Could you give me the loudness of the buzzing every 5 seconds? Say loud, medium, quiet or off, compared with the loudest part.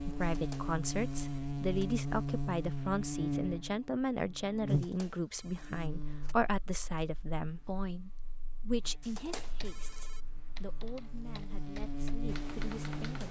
loud, quiet, medium.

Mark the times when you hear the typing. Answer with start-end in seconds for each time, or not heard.
9.0-13.2.